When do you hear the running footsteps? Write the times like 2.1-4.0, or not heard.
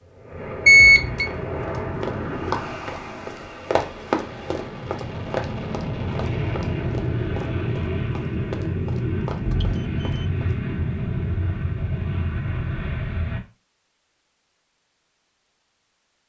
1.2-10.8.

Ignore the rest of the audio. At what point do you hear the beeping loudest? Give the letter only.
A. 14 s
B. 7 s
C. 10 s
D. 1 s
D.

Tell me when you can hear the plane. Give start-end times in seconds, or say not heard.
0.0-13.4.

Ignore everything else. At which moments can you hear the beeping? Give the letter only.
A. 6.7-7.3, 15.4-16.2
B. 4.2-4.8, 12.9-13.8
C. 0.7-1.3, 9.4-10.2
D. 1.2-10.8
C.